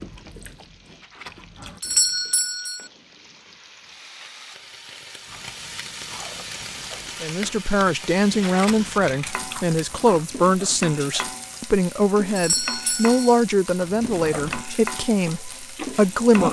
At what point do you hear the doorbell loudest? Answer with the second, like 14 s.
2 s.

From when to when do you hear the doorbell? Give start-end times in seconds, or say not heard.
1.8-2.9, 12.3-13.4.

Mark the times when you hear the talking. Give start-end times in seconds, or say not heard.
7.2-16.4.